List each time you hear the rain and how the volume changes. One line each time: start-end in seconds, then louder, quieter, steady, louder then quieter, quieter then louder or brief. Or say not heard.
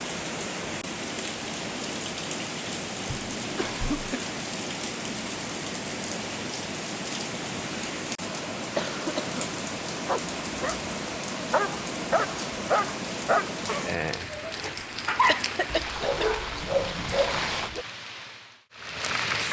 0.0-19.4 steady.